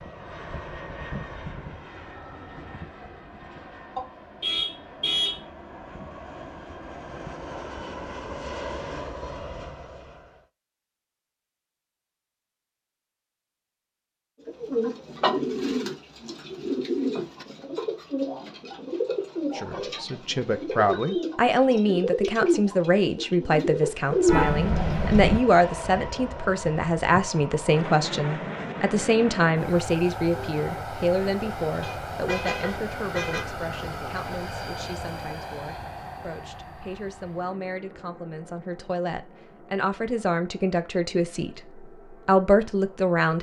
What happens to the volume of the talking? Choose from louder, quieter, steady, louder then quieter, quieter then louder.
quieter then louder.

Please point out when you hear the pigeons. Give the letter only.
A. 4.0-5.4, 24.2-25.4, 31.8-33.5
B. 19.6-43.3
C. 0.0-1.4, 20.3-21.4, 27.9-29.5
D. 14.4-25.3
D.